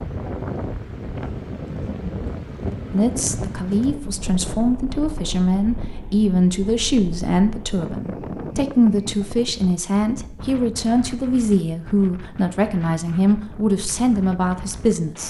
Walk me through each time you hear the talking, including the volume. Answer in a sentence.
You can hear the talking from 2.9 to 15.2 s, at a steady volume.